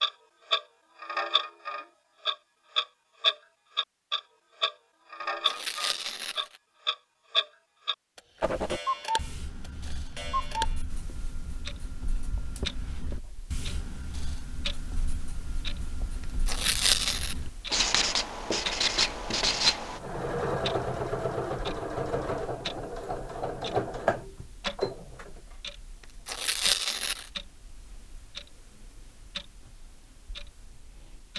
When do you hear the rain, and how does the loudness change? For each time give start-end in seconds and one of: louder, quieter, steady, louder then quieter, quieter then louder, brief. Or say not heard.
not heard.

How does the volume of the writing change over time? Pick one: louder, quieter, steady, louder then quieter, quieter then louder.
louder.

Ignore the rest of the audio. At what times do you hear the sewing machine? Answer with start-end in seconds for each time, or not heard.
18.8-25.6.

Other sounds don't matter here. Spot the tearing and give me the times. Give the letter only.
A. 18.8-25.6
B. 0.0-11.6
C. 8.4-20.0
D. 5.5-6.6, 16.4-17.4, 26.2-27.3
D.